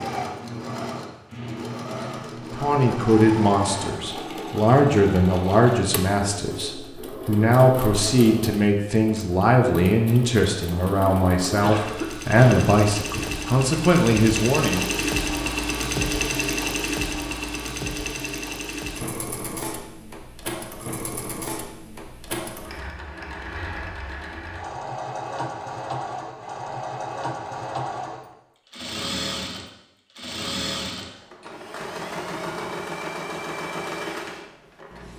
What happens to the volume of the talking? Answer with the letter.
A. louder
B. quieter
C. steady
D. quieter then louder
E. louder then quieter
C.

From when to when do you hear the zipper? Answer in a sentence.
The zipper can't be heard in this clip.